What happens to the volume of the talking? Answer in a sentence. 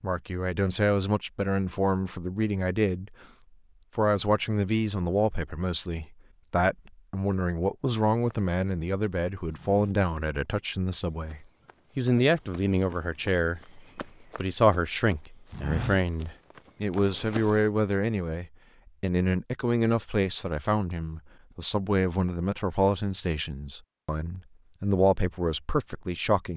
The volume of the talking stays about the same.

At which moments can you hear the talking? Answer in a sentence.
You can hear the talking from 0.0 to 3.1 s and from 4.0 to 26.5 s.